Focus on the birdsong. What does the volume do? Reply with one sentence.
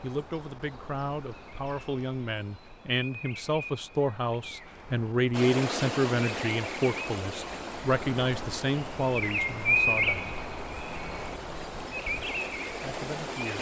The loudness of the birdsong goes up, then down.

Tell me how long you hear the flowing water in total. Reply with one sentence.
You can hear the flowing water for 8 seconds altogether.